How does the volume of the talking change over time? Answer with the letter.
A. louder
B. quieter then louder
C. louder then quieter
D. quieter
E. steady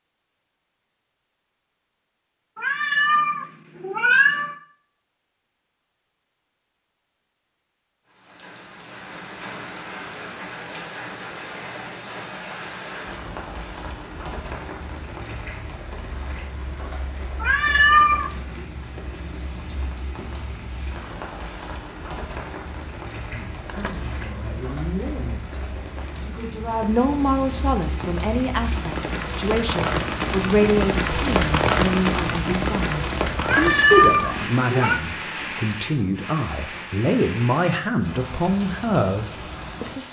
A.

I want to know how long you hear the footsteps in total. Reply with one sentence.
The footsteps can't be heard in this clip.